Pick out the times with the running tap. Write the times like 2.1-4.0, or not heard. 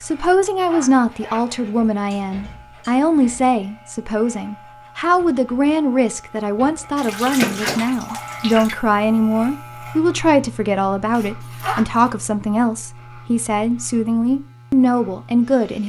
7.0-8.8.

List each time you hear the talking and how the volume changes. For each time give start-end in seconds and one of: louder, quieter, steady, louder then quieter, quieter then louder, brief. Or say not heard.
0.0-15.8 steady.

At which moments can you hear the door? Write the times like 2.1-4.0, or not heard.
7.2-7.8.